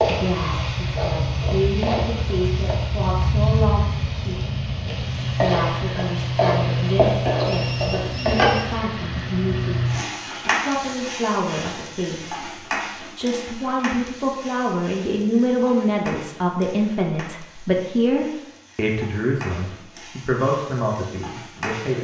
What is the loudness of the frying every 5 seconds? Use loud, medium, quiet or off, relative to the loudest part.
loud, loud, medium, quiet, quiet.